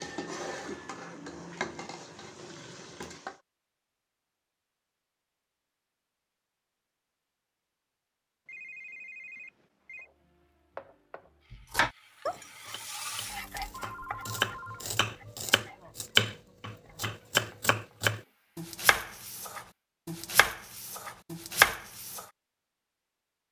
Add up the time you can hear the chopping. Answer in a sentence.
You can hear the chopping for 11 seconds altogether.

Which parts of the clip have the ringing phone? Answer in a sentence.
You can hear the ringing phone from 8.4 to 10.1 s and from 13.8 to 14.8 s.